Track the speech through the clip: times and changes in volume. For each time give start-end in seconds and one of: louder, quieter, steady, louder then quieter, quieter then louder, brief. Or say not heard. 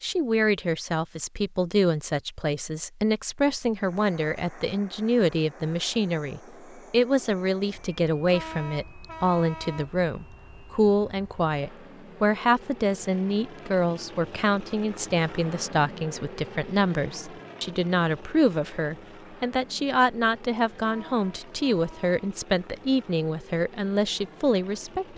0.0-25.1 steady.